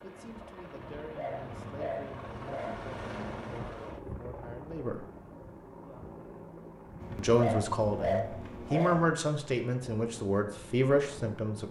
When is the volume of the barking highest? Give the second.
8 s.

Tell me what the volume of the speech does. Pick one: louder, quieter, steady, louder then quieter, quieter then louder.
louder.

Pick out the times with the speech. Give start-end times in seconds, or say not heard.
0.0-5.0, 7.2-11.6.